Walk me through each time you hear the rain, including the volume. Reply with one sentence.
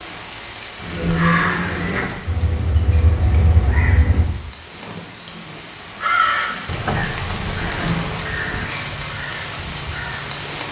The rain can be heard from 0.0 to 10.6 s, getting quieter then louder.